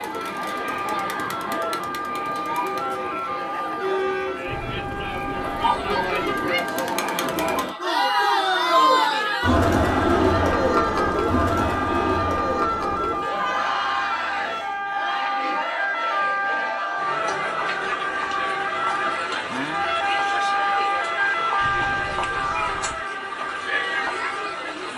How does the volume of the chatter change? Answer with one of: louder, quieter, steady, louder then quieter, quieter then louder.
louder then quieter.